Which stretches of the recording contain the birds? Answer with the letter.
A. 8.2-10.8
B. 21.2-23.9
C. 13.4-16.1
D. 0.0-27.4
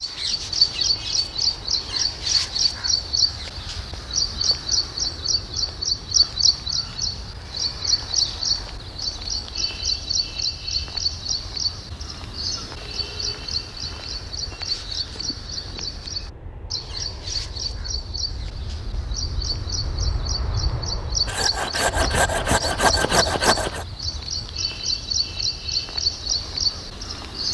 D.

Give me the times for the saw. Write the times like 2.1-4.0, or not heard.
21.2-23.9.